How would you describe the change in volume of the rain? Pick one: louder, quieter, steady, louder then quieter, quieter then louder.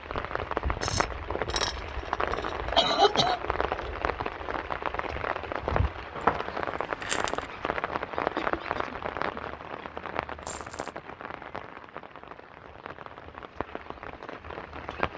quieter.